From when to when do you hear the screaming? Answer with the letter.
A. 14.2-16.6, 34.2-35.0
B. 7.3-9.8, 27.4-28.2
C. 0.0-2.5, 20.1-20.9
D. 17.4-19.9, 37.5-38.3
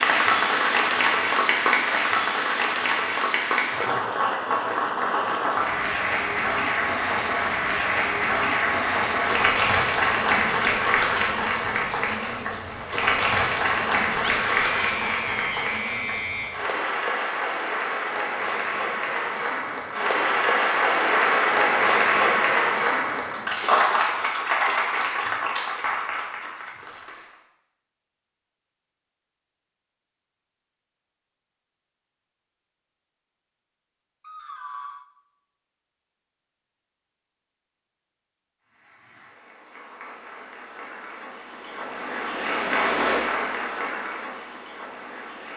A.